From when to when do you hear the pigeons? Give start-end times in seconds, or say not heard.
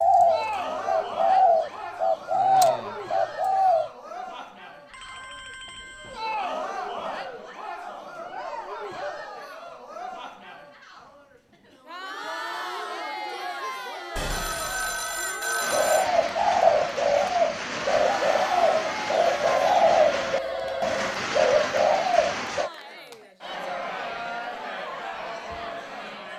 0.0-3.9, 15.6-22.7.